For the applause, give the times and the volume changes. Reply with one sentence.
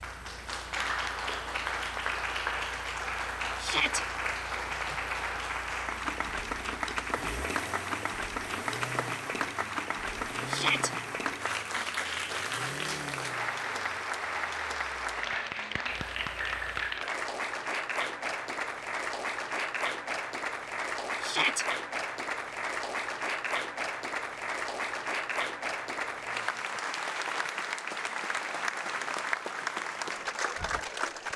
The applause can be heard from 0.0 to 31.3 s, at a steady volume.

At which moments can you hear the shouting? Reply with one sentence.
The shouting can be heard from 3.5 to 4.0 s, from 10.4 to 10.9 s and from 21.2 to 21.6 s.